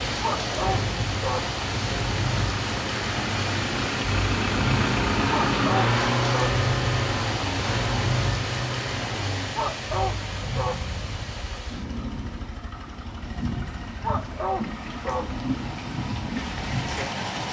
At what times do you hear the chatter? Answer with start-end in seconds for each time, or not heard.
not heard.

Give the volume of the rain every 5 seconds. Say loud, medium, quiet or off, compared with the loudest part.
loud, loud, medium, loud.